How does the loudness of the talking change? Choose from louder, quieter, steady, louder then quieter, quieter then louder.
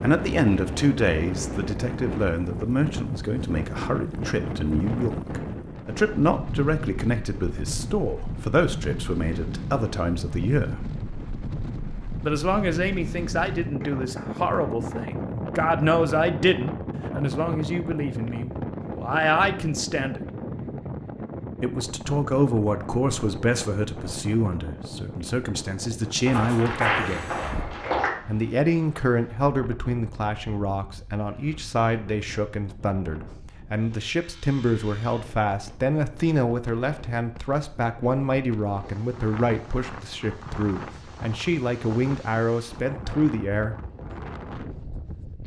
steady.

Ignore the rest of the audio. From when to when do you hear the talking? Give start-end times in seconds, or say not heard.
0.0-10.8, 12.2-20.2, 21.6-27.4, 28.2-43.8.